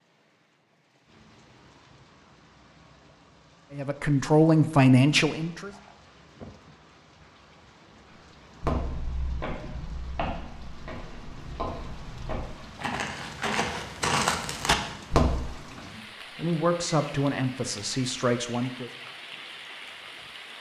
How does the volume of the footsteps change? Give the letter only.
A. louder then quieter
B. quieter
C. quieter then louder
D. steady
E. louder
E.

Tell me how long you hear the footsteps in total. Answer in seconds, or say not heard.
7 s.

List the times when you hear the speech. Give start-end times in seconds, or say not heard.
3.7-5.7, 15.7-18.9.